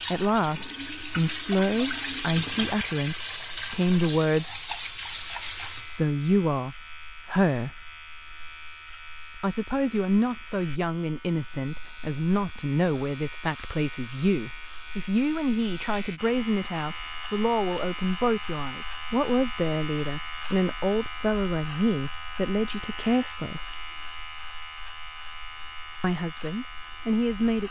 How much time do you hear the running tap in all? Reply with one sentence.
The running tap can be heard for 6 seconds in total.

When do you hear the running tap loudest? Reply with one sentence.
The volume of the running tap peaks at 2 seconds.